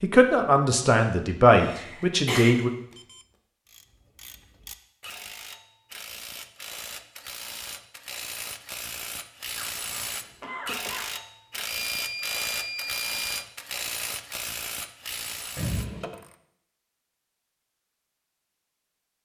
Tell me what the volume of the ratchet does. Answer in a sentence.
The volume of the ratchet goes up.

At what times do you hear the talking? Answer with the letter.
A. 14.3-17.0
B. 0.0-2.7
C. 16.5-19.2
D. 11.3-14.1
B.